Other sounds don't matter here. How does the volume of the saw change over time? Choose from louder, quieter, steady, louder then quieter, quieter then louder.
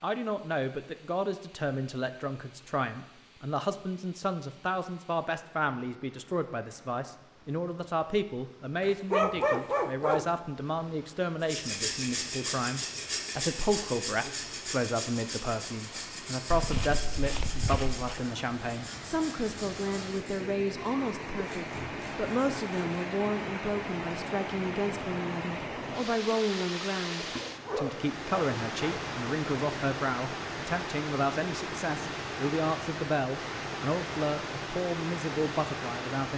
quieter.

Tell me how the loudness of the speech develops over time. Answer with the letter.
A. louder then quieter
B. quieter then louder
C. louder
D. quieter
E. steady
E.